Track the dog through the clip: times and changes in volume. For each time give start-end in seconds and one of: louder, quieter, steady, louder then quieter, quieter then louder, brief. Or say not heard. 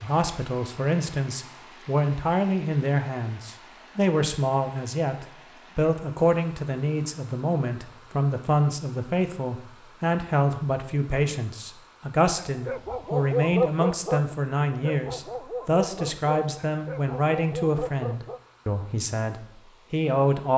12.3-18.4 quieter.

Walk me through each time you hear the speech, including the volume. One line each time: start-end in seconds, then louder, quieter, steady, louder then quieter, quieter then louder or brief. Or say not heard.
0.0-20.5 steady.